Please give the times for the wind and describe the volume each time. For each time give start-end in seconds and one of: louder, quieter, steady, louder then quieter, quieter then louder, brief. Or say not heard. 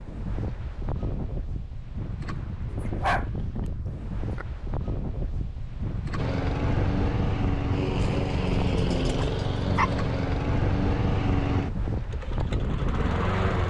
0.0-13.6 steady.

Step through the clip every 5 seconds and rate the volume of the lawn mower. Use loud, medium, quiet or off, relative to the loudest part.
off, loud, loud.